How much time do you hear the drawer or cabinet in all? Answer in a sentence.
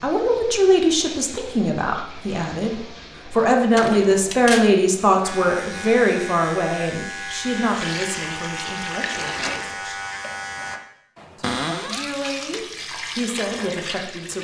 You can hear the drawer or cabinet for 2 seconds altogether.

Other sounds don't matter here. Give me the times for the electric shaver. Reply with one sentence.
The electric shaver can be heard from 5.2 to 10.8 s.